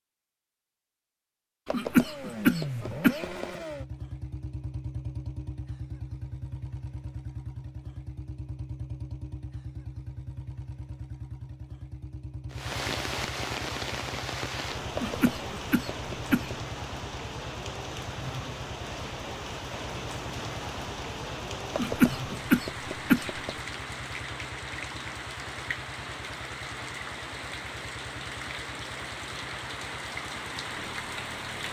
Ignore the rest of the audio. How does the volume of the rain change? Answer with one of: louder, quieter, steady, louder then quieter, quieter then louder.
steady.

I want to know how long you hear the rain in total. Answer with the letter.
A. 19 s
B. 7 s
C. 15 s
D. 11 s
A.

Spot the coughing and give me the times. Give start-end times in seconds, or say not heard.
1.6-3.5, 14.9-16.6, 21.7-23.6.